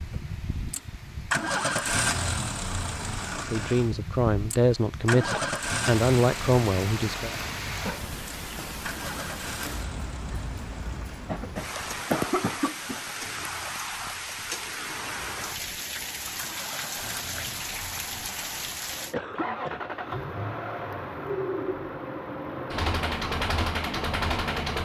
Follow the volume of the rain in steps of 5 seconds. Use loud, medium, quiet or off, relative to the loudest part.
quiet, loud, loud, loud, off.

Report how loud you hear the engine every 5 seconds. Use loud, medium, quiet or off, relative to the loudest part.
loud, loud, quiet, medium, loud.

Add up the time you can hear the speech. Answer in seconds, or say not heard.
4 s.